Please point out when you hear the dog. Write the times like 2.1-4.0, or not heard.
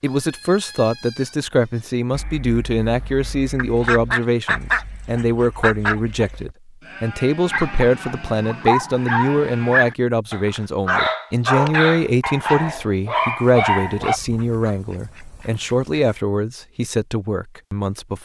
7.5-14.2.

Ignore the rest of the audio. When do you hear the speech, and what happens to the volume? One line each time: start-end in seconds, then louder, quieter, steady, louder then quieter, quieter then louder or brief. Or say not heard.
0.0-18.1 steady.